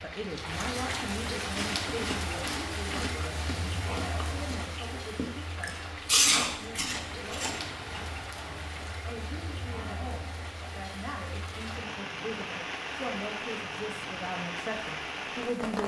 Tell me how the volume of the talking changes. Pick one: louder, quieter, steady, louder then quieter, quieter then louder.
quieter then louder.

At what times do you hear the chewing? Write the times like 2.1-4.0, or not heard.
1.5-7.5.